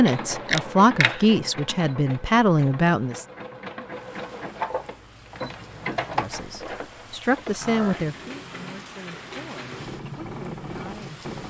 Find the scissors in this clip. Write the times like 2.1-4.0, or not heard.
0.1-1.2.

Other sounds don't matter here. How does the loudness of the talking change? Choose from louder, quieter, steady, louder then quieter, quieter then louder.
quieter.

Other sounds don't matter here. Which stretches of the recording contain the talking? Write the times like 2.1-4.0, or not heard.
0.0-3.2, 6.2-11.2.